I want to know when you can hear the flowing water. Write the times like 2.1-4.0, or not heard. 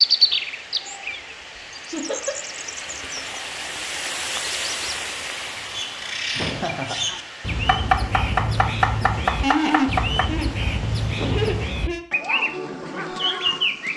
0.0-11.8.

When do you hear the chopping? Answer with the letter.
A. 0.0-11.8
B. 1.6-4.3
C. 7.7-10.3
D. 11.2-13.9
C.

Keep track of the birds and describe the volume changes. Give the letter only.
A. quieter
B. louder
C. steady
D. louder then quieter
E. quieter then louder
E.